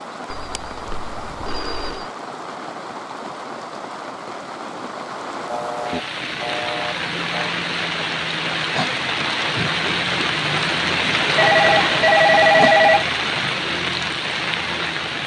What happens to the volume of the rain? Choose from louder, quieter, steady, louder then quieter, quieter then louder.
louder.